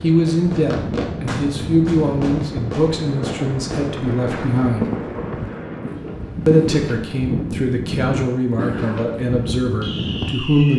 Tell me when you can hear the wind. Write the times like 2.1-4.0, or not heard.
0.0-10.5.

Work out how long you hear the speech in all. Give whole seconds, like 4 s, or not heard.
9 s.